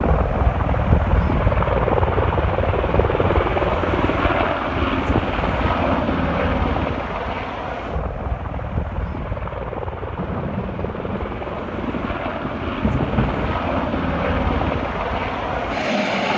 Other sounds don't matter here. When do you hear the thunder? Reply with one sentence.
The thunder can be heard from 10.2 to 13.6 s.